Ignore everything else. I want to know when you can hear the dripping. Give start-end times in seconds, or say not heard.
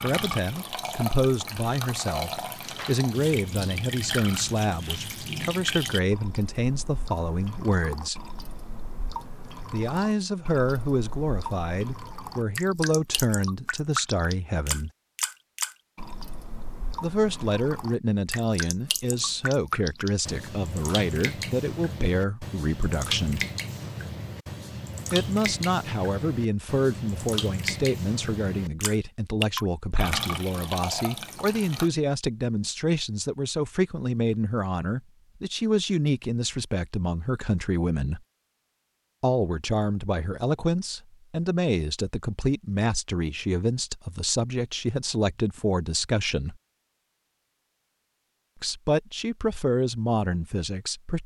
0.0-31.9.